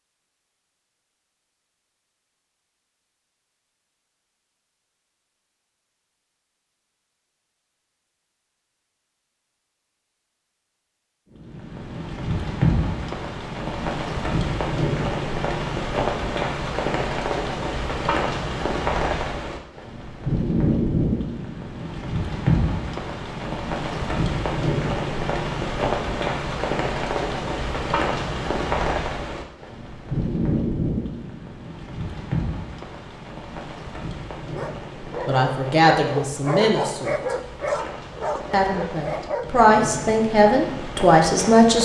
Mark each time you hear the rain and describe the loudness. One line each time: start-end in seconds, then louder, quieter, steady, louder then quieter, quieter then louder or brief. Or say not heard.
11.3-41.8 quieter.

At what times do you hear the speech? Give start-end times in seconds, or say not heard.
35.2-37.4, 38.5-41.8.